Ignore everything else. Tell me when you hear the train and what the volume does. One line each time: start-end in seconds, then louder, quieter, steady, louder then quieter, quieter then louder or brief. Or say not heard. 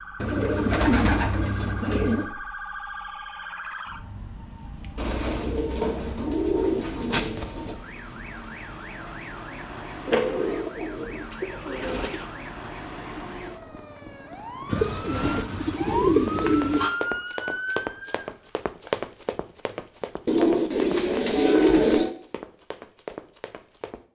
not heard.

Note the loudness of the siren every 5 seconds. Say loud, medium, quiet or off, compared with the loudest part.
medium, medium, medium, loud, off.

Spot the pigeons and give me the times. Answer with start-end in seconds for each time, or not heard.
0.2-2.3, 5.0-7.8, 10.1-12.2, 14.7-16.9, 20.2-22.1.